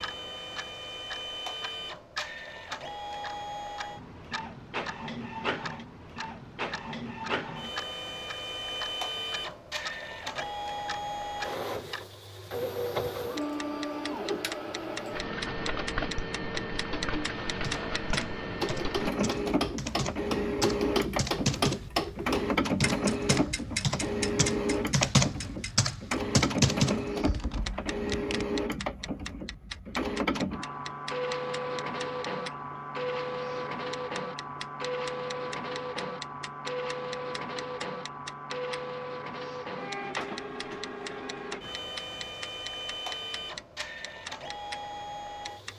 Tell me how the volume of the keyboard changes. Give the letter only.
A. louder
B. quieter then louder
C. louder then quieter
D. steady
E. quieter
A.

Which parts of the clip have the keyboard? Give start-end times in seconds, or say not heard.
17.4-28.4.